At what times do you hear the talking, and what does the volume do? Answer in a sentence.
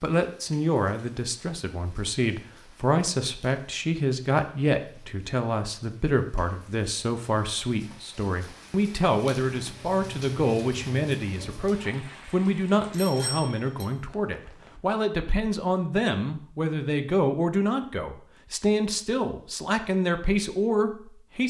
You can hear the talking from 0.0 to 21.4 s, at a steady volume.